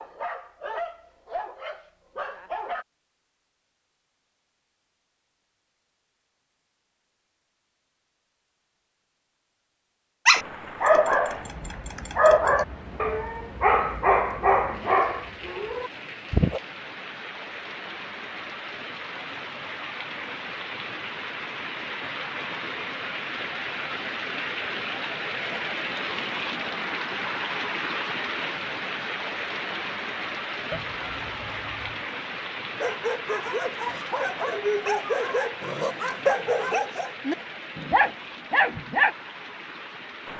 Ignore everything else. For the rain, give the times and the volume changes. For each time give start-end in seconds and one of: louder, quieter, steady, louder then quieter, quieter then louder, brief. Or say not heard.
10.3-40.3 louder then quieter.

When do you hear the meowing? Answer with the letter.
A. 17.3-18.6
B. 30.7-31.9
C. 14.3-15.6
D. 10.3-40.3
B.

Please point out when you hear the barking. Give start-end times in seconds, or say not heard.
0.0-2.9, 10.2-16.6, 32.8-39.1.